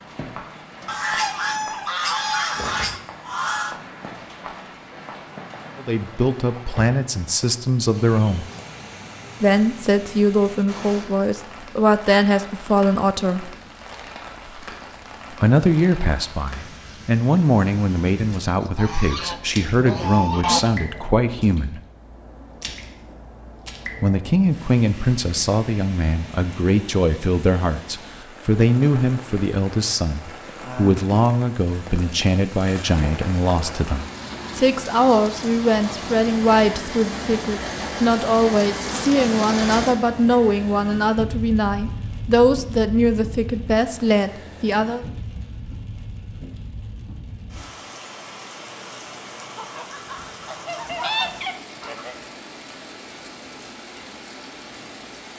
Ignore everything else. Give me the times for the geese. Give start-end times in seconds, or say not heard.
0.8-3.8, 18.6-20.6, 49.5-52.1.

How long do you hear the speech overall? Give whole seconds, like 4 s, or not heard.
34 s.